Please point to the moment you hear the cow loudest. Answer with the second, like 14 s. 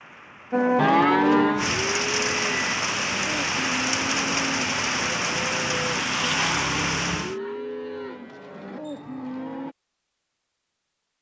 1 s.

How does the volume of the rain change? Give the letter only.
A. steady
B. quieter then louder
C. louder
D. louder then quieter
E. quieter
C.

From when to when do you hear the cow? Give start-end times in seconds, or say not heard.
0.5-9.8.